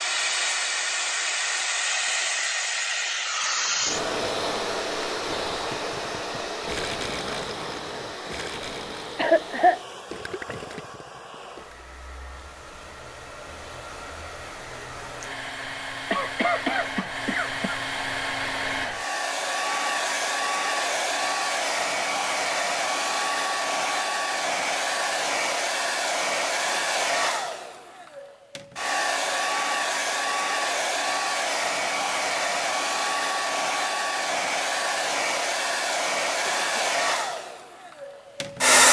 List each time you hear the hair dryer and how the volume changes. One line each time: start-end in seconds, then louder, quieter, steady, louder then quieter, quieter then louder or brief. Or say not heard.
0.0-38.8 quieter then louder.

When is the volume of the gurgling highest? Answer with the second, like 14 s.
7 s.